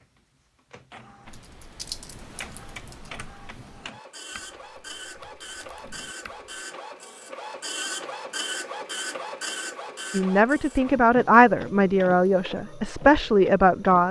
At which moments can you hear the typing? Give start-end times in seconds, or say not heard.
1.2-6.5.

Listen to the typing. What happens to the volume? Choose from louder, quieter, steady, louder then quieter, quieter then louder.
quieter.